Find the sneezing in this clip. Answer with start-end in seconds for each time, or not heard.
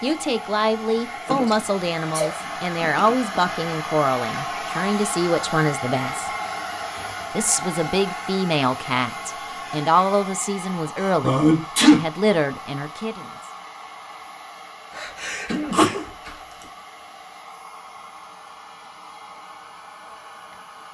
1.2-3.5, 10.9-12.0, 14.9-16.4.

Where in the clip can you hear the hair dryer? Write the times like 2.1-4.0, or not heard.
0.0-20.8.